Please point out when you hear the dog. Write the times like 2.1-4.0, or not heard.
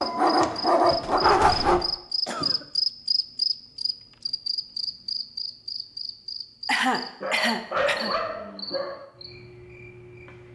0.0-1.8, 7.2-9.0.